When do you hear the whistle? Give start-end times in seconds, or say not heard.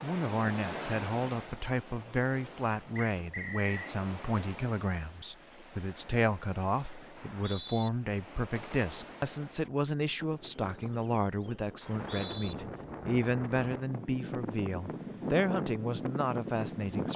3.0-4.0, 7.2-7.9, 11.8-12.6.